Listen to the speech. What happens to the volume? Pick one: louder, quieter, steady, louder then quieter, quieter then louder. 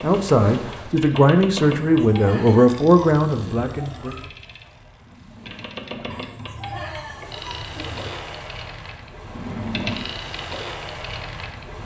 louder then quieter.